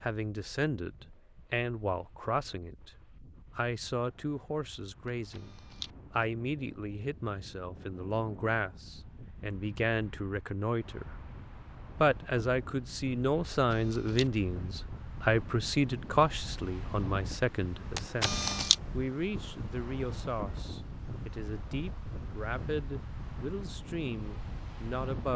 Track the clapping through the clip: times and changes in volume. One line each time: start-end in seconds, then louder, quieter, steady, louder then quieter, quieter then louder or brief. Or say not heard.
not heard.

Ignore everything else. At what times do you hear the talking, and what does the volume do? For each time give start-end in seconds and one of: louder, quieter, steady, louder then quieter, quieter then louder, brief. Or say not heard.
0.0-11.1 steady
11.9-25.3 quieter.